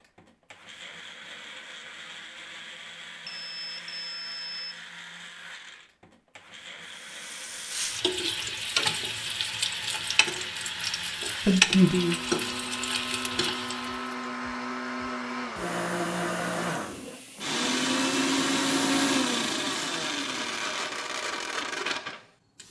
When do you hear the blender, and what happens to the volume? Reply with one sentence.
The blender can be heard from 0.0 to 22.6 s, getting louder.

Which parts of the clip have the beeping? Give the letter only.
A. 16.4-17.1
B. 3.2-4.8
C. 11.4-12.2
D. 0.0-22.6
B.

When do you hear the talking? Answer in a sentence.
You can hear the talking from 11.4 to 12.2 s.